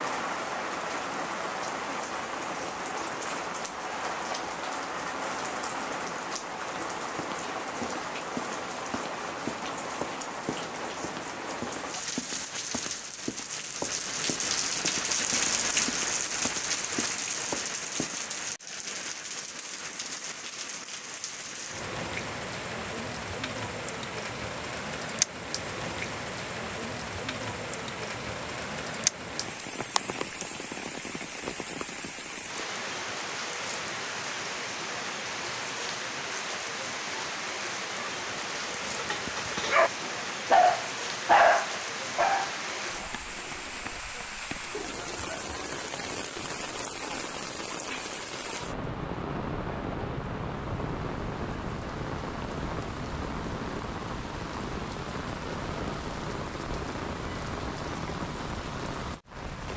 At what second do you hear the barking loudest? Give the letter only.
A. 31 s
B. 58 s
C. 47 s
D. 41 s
D.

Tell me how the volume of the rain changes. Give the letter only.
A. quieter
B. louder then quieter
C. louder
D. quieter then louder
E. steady
E.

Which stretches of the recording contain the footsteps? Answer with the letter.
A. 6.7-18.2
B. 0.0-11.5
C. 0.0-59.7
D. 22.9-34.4
A.